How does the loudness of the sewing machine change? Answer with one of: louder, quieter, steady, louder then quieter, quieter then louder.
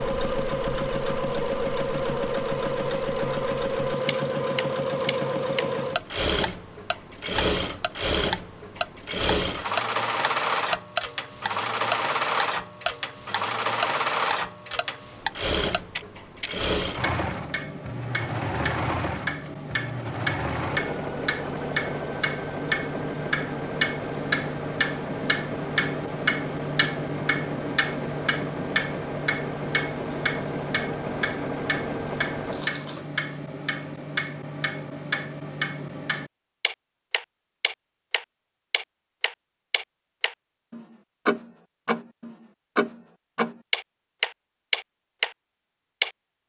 quieter.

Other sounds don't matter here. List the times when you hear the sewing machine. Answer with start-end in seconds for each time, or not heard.
0.0-33.0.